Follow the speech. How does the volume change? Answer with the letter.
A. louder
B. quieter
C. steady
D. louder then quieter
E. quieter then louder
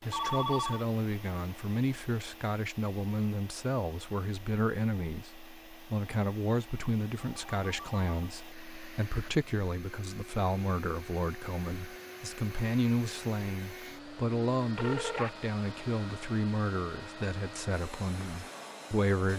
C.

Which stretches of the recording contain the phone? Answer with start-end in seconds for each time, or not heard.
0.1-0.8, 7.2-8.3, 14.3-15.3.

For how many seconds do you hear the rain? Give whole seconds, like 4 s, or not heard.
not heard.